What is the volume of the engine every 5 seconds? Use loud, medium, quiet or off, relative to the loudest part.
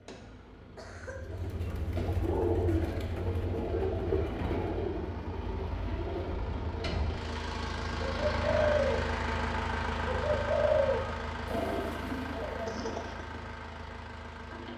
medium, loud, loud.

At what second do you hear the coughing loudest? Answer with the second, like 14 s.
13 s.